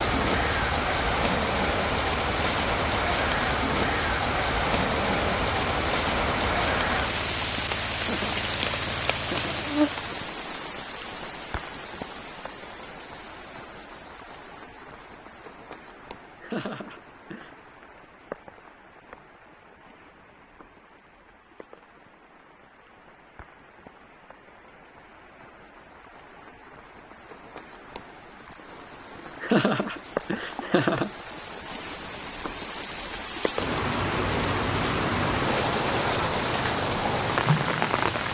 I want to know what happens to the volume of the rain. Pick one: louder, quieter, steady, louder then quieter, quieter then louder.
quieter then louder.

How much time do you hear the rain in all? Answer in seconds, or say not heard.
38 s.